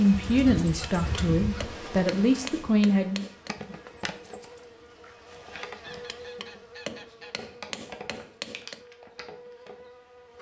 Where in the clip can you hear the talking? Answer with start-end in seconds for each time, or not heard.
0.0-3.2.